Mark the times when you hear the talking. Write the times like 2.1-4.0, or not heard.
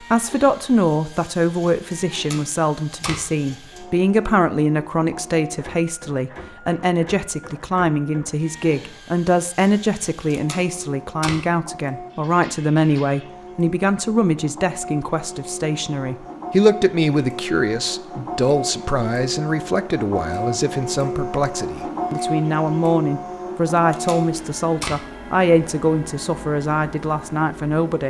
0.0-28.0.